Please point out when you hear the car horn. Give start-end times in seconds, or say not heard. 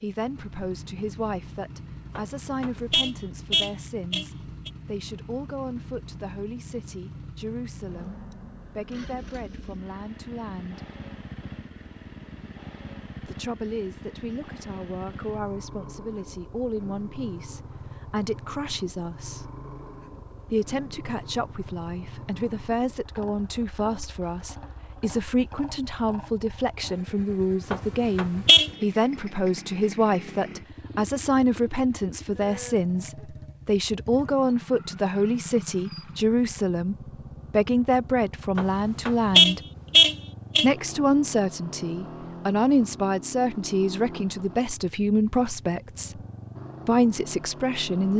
2.1-4.7, 27.7-28.7, 38.5-40.7.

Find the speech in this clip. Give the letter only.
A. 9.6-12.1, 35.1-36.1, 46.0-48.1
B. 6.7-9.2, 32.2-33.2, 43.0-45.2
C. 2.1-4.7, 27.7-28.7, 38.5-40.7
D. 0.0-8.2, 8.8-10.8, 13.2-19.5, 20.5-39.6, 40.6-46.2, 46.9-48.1
D.